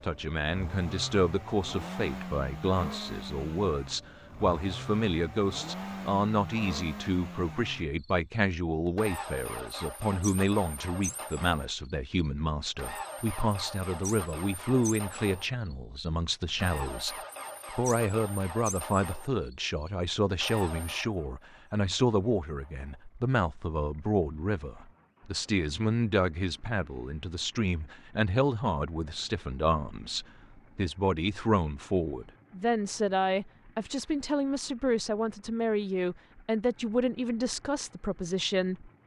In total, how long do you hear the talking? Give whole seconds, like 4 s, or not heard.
39 s.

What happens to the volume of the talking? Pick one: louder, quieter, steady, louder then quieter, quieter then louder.
steady.